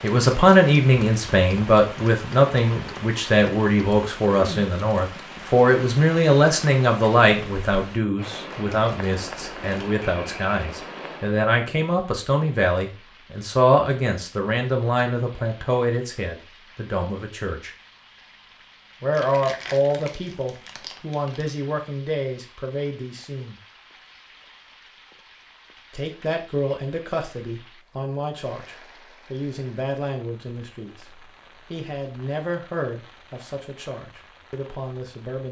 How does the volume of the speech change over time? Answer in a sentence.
The volume of the speech goes down.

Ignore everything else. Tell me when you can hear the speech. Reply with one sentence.
You can hear the speech from 0.0 to 17.7 s, from 19.0 to 23.6 s and from 25.9 to 35.4 s.